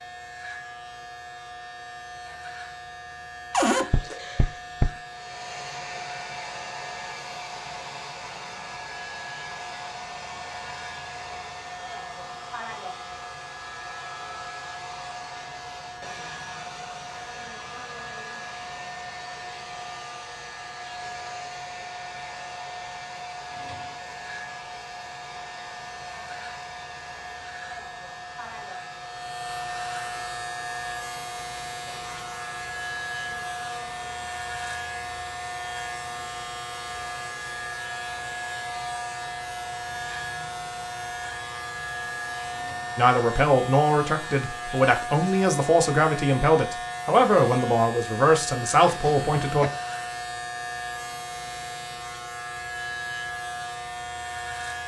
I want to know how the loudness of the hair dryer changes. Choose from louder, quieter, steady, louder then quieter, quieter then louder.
quieter.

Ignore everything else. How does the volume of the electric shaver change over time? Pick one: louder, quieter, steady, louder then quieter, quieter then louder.
louder.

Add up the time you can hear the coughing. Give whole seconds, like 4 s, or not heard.
2 s.